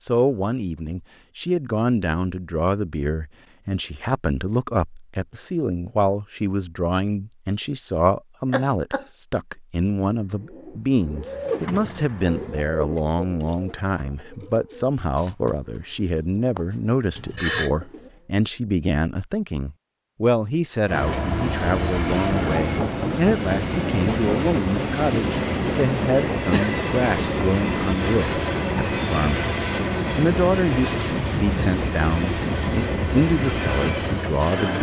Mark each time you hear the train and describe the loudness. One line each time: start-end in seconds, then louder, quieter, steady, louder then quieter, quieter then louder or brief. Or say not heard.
20.9-34.7 steady.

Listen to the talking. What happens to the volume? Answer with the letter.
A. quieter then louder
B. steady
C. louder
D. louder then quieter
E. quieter
B.